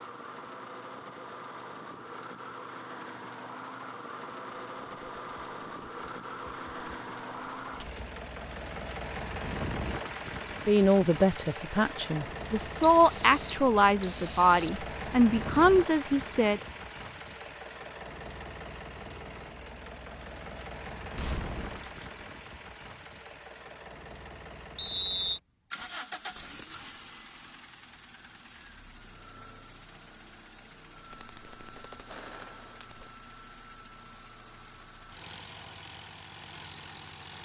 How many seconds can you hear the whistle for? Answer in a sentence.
You can hear the whistle for 3 seconds altogether.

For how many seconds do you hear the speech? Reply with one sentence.
You can hear the speech for 6 seconds altogether.